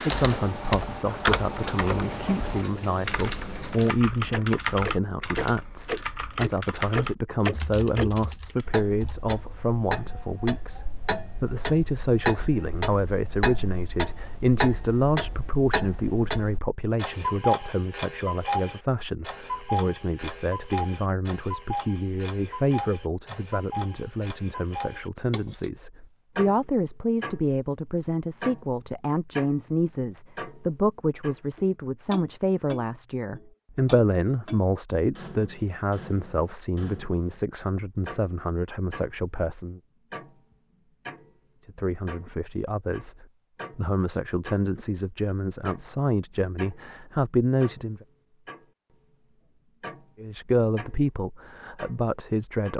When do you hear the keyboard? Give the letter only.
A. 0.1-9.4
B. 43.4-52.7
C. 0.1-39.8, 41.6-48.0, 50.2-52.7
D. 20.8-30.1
A.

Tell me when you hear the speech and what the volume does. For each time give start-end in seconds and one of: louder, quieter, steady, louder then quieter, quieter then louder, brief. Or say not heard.
0.1-39.8 steady
41.6-48.0 louder
50.2-52.7 brief.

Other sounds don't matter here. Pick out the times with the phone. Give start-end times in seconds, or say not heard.
not heard.